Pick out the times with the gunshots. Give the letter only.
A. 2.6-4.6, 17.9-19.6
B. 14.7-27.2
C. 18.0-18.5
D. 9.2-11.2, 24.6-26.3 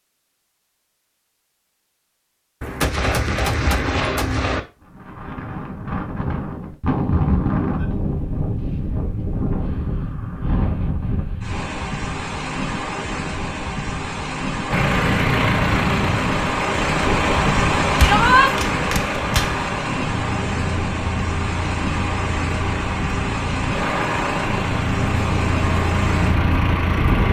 A.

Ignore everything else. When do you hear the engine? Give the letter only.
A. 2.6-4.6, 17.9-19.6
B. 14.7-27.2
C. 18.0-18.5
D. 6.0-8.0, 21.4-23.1
B.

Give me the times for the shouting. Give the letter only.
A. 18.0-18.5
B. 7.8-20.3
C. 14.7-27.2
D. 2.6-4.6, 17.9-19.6
A.